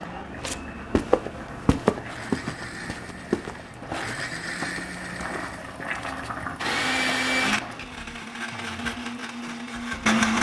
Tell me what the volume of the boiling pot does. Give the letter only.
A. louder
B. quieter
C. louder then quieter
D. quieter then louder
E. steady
A.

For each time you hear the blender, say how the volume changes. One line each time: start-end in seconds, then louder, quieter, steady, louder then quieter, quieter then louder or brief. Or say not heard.
0.0-10.3 louder then quieter.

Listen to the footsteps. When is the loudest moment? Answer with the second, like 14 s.
2 s.